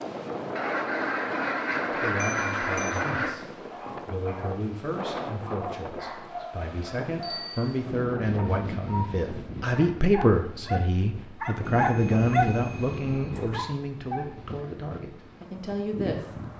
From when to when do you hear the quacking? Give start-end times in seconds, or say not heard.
0.6-3.4.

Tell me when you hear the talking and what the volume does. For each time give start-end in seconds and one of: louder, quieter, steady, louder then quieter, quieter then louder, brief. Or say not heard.
1.9-16.4 louder then quieter.